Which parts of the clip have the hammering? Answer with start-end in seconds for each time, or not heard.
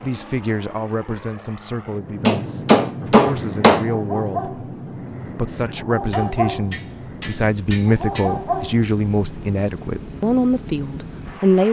2.2-3.9, 6.1-8.3.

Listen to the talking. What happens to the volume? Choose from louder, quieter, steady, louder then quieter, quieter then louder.
louder.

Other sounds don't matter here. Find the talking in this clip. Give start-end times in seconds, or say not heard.
0.0-4.5, 5.3-11.6.